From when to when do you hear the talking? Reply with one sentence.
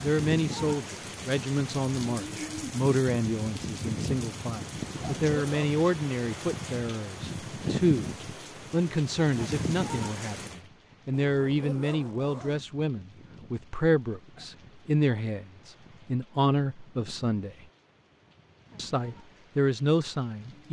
You can hear the talking from 0.0 to 8.1 s, from 8.7 to 17.6 s and from 18.8 to 20.6 s.